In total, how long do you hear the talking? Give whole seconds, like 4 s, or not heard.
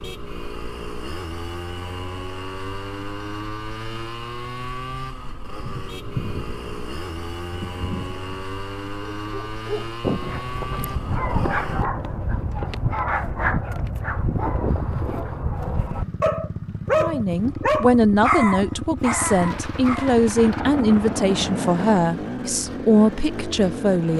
7 s.